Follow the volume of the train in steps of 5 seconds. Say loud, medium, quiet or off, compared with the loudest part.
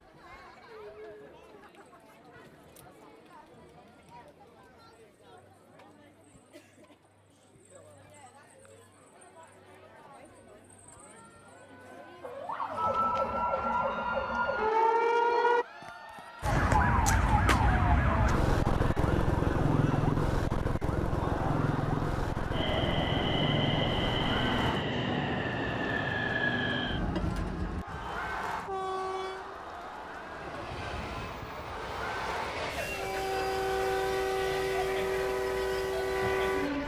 off, off, off, off, loud, loud, loud, loud.